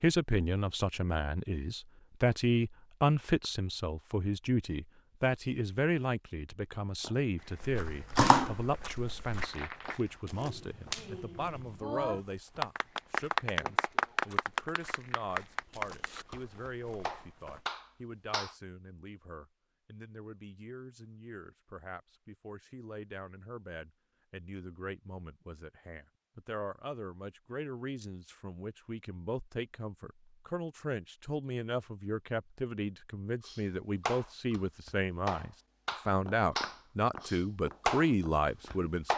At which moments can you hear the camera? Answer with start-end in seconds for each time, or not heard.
7.6-9.4.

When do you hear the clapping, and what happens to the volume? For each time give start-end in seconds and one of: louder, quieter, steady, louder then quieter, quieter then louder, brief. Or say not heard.
9.3-18.6 louder then quieter
33.4-39.1 quieter then louder.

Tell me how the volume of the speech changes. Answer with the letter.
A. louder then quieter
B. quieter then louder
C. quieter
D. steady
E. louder
B.